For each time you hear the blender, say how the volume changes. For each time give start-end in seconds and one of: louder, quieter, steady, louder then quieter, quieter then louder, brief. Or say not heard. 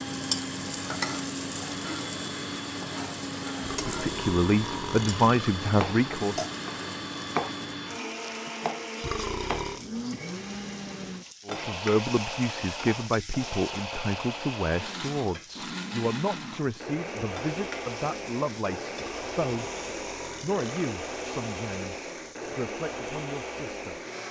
0.0-24.2 steady.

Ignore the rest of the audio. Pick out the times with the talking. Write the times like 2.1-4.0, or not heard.
3.9-6.4, 11.4-19.6, 20.4-24.0.